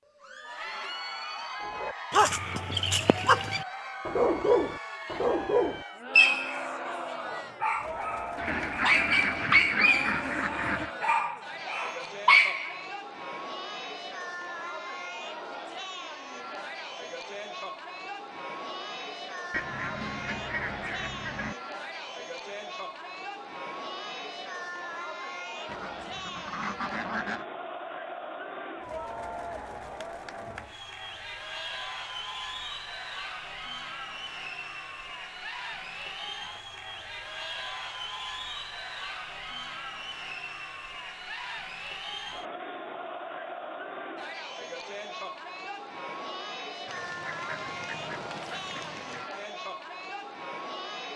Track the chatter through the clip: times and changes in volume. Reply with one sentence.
The chatter can be heard from 0.1 to 51.1 s, at a steady volume.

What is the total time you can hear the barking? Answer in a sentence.
You can hear the barking for 11 seconds altogether.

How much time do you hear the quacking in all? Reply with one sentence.
You can hear the quacking for 9 seconds altogether.